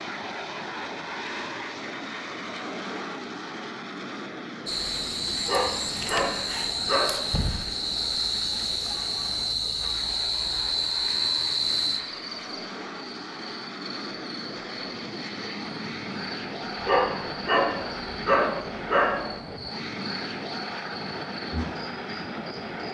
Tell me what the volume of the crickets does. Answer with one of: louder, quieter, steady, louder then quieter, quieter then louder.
quieter.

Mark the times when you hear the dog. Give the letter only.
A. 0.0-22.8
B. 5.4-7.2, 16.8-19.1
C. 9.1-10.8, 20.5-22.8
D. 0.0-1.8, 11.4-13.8
B.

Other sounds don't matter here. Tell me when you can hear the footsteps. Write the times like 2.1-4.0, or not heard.
not heard.